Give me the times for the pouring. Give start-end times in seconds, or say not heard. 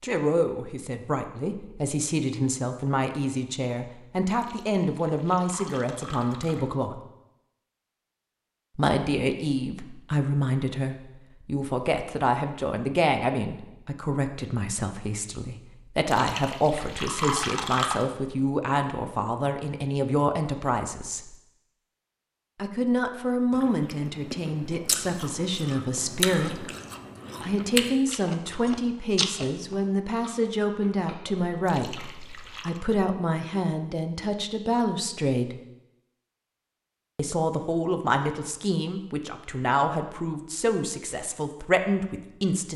4.4-6.7, 16.1-18.1, 31.6-32.9.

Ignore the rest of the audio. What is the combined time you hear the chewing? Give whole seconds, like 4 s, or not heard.
9 s.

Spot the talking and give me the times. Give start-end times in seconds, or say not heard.
0.0-7.0, 8.8-21.3, 22.6-26.6, 27.4-35.5, 37.1-42.7.